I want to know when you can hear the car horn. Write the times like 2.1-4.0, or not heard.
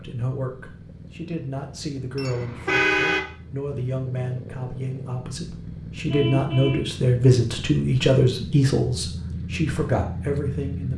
2.1-3.2, 6.0-6.9.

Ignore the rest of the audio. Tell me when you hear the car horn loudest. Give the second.
3 s.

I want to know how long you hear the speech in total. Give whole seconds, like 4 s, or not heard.
11 s.